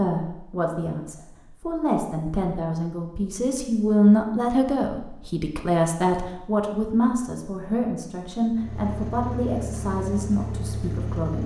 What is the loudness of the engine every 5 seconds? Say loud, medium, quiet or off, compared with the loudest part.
off, loud, loud.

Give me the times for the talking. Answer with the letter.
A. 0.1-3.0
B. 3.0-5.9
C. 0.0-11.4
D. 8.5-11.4
C.